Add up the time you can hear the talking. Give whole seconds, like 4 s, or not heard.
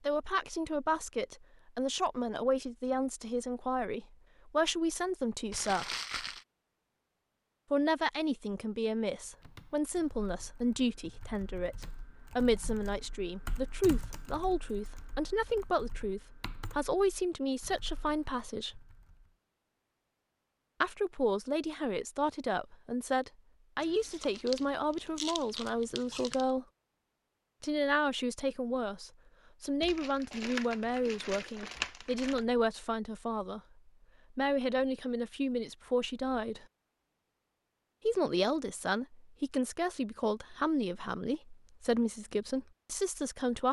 37 s.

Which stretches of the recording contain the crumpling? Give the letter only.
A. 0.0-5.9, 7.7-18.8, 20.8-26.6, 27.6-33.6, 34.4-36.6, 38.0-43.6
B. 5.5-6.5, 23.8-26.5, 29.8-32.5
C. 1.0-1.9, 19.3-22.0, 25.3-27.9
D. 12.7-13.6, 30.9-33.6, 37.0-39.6
B.